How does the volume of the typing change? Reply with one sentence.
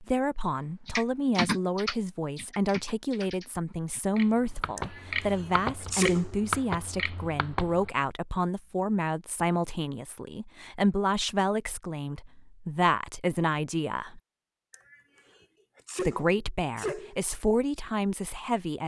The volume of the typing goes down, then up.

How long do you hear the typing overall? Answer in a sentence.
The typing can be heard for 7 seconds in total.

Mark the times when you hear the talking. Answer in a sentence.
You can hear the talking from 0.0 to 14.2 s and from 15.9 to 18.8 s.